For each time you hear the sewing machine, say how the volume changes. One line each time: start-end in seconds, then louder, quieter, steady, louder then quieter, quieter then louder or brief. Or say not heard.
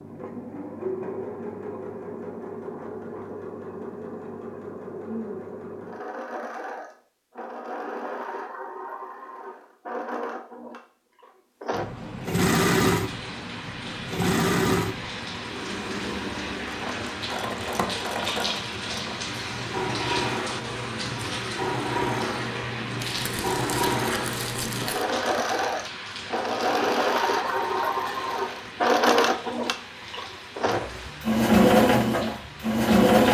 0.0-33.2 louder.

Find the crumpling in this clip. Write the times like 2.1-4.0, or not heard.
23.0-25.1.